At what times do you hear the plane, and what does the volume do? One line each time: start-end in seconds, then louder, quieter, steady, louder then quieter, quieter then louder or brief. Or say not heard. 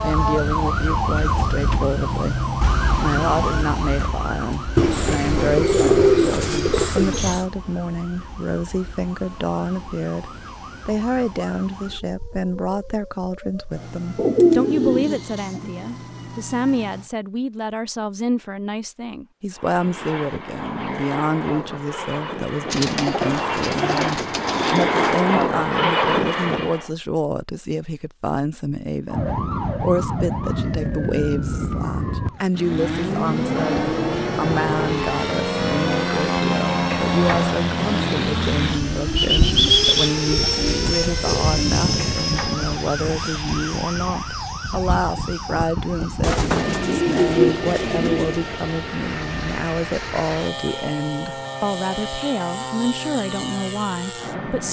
19.5-26.9 louder
32.5-54.6 quieter.